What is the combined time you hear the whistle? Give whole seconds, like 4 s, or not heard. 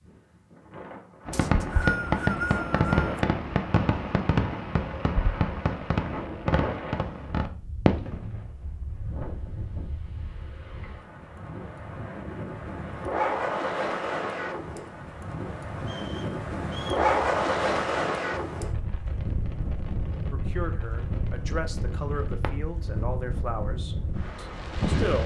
3 s.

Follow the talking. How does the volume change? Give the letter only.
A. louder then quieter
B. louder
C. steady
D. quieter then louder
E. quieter
A.